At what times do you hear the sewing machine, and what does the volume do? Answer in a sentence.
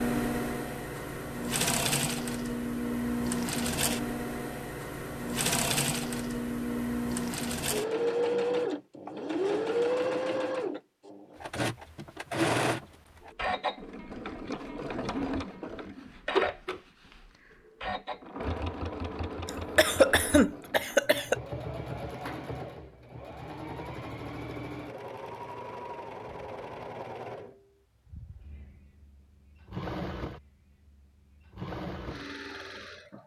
The sewing machine can be heard from 0.0 to 33.2 s, getting quieter.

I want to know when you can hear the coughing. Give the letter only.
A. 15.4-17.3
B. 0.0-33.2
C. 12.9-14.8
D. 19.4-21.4
D.